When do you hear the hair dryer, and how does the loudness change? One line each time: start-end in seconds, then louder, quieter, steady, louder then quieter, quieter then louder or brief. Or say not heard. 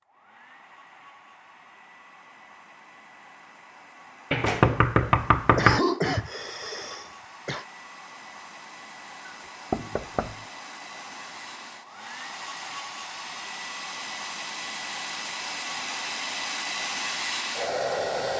0.0-18.3 louder.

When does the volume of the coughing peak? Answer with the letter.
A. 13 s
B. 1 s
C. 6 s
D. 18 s
C.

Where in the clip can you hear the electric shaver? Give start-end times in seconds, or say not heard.
not heard.